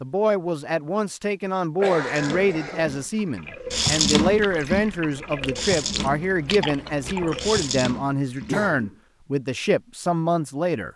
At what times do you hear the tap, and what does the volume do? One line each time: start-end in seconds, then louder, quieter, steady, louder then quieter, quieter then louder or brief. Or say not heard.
2.0-8.6 louder then quieter.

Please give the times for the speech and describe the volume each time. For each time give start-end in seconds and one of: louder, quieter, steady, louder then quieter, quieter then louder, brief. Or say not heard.
0.0-10.9 steady.